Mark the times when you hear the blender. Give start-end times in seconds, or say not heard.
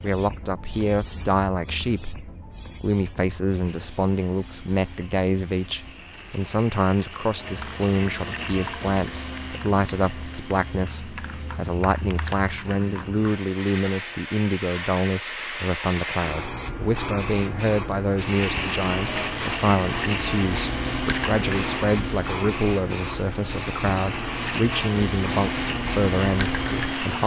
3.5-14.3, 18.1-27.2.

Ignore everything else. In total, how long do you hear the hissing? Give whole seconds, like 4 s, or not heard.
27 s.